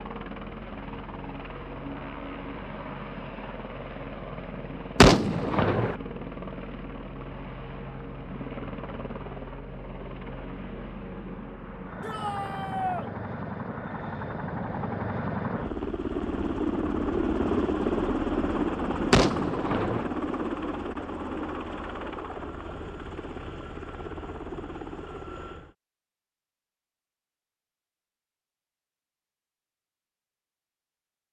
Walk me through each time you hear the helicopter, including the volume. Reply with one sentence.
You can hear the helicopter from 0.0 to 25.8 s, getting louder then quieter.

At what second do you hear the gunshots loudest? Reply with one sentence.
The volume of the gunshots peaks at 5 seconds.